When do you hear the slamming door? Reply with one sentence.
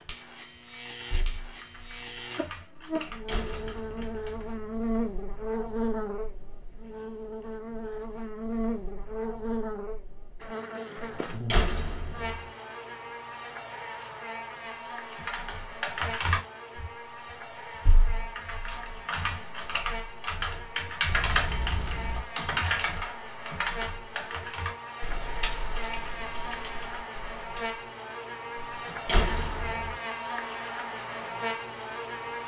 You can hear the slamming door from 2.8 to 4.9 s, from 10.9 to 12.4 s and from 28.6 to 29.9 s.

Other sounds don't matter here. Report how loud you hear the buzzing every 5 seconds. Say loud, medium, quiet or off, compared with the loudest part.
loud, loud, medium, medium, medium, loud, loud.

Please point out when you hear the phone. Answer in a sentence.
You can hear the phone from 3.3 to 4.2 s and from 21.1 to 22.2 s.